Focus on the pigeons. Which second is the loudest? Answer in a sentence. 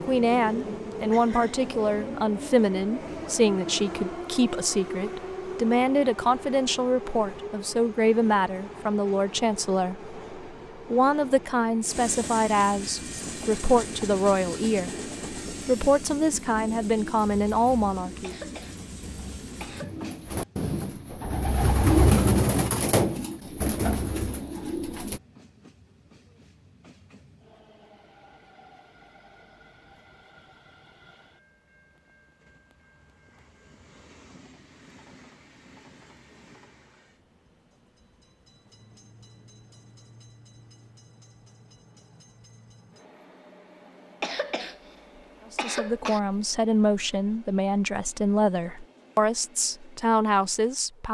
The volume of the pigeons peaks at 22 seconds.